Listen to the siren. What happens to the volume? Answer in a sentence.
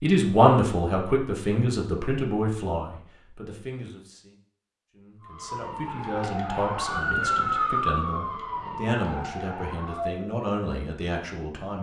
The loudness of the siren goes up, then down.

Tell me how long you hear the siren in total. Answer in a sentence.
The siren can be heard for 5 seconds in total.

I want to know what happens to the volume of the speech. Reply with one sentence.
The loudness of the speech goes down.